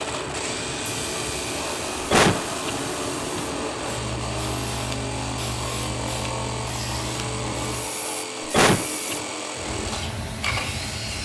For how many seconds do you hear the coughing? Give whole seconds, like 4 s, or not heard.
2 s.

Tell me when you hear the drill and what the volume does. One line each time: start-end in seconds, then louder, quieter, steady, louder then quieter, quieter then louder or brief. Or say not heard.
0.0-11.1 steady.